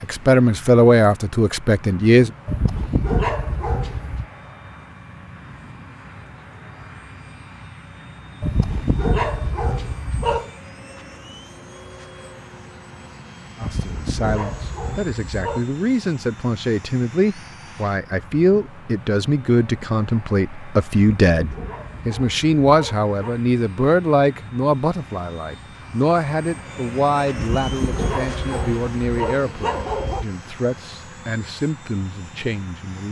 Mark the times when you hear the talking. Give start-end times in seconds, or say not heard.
0.0-2.3, 13.6-33.0.